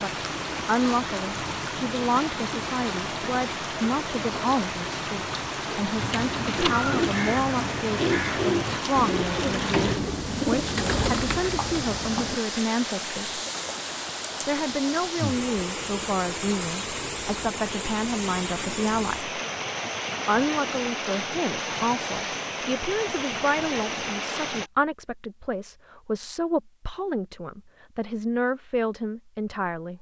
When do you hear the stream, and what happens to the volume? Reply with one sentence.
You can hear the stream from 0.0 to 24.7 s, at a steady volume.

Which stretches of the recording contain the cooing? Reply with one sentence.
The cooing can be heard from 6.0 to 12.4 s.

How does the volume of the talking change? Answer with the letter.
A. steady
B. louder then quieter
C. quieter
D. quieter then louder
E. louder
A.